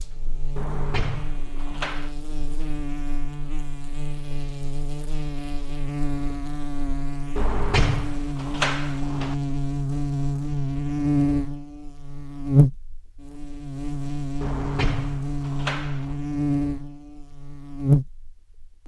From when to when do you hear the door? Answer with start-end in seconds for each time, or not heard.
0.6-2.1, 7.3-9.3, 14.4-16.1.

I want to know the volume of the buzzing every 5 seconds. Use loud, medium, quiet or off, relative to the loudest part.
medium, medium, loud, loud.